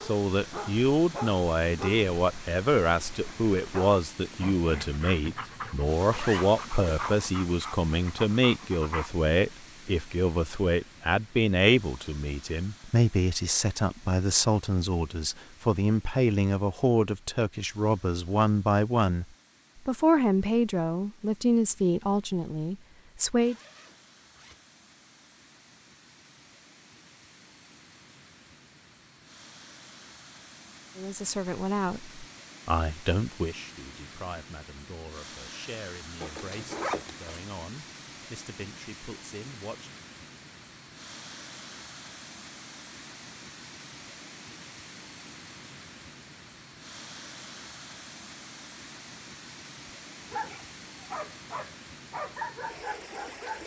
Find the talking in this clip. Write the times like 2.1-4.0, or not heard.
0.0-19.2, 19.9-23.6, 30.9-40.0.